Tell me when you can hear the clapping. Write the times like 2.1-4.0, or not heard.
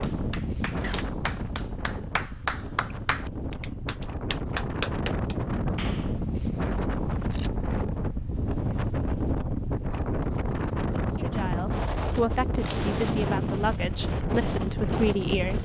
0.0-6.2.